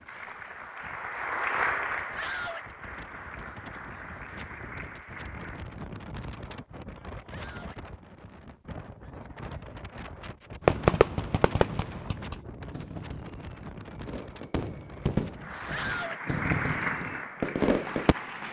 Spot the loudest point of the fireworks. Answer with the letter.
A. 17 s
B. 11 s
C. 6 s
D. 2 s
B.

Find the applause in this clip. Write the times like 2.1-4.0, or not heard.
0.0-5.8, 15.3-18.4.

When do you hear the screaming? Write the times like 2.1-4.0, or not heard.
2.1-2.6, 7.3-7.8, 15.7-16.2.